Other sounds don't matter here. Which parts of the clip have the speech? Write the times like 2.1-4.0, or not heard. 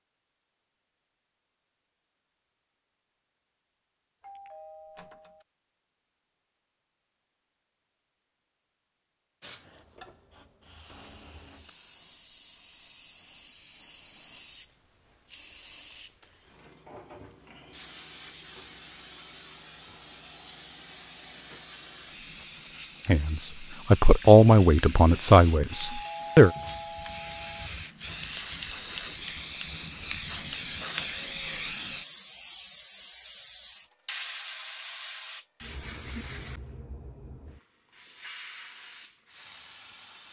23.1-26.5.